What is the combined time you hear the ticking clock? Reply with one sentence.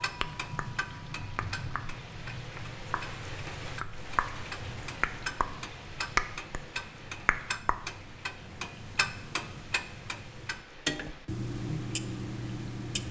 You can hear the ticking clock for 13 seconds altogether.